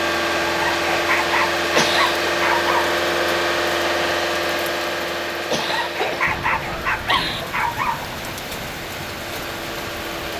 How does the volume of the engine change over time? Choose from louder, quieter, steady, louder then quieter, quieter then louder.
quieter.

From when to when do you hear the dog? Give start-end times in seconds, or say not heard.
0.5-2.9, 5.5-8.3.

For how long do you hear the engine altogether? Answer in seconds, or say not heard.
10 s.